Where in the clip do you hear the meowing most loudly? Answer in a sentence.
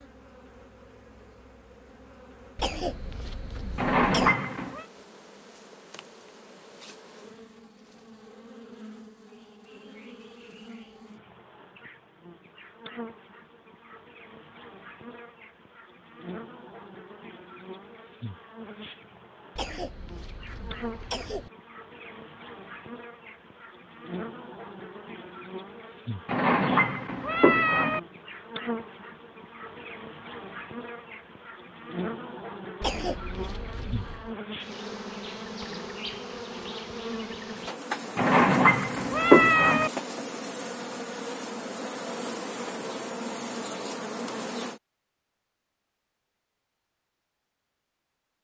The loudest moment of the meowing is at 39 seconds.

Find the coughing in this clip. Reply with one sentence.
You can hear the coughing from 2.5 to 4.3 s, from 19.6 to 21.5 s and from 32.8 to 34.3 s.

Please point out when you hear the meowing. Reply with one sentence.
The meowing can be heard from 3.8 to 4.8 s, from 26.2 to 28.0 s and from 38.1 to 39.9 s.